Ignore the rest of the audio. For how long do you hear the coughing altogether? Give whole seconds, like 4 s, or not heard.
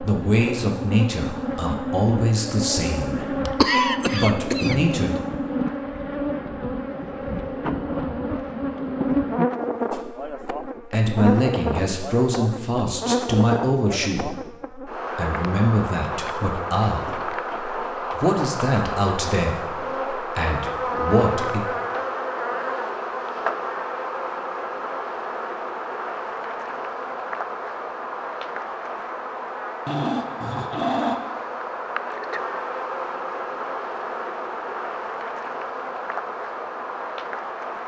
2 s.